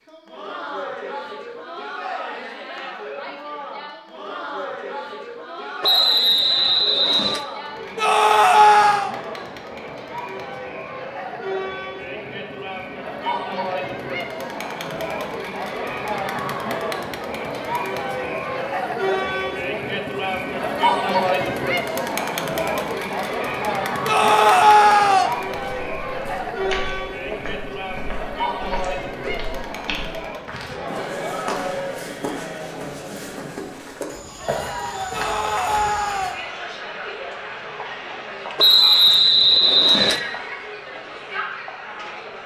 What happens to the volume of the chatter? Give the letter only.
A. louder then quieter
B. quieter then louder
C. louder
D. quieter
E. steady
A.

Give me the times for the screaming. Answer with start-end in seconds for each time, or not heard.
8.0-9.1, 24.1-25.3, 35.1-36.4.